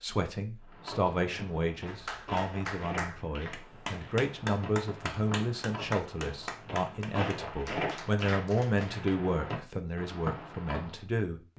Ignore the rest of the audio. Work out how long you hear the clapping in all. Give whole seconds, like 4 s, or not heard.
7 s.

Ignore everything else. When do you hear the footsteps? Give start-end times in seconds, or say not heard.
0.6-11.0.